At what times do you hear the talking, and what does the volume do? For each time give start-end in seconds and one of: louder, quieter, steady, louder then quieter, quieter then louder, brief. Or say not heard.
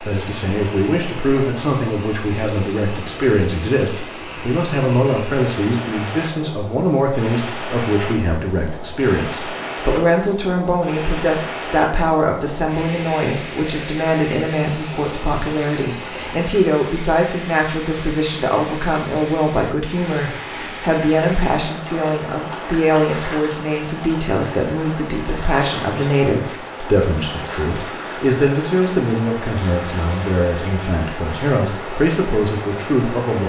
0.0-33.4 steady.